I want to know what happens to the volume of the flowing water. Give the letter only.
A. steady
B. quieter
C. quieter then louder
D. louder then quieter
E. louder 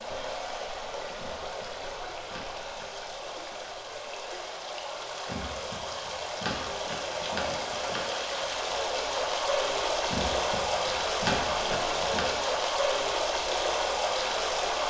E.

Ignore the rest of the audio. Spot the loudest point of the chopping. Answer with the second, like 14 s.
11 s.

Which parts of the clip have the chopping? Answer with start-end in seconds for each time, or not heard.
1.1-3.1, 5.2-8.1, 10.1-12.3.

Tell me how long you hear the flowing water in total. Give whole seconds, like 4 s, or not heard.
15 s.